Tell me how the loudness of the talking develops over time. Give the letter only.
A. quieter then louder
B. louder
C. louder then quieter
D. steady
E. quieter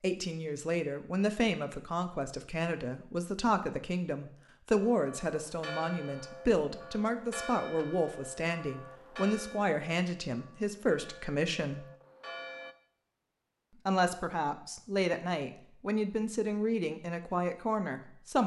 D.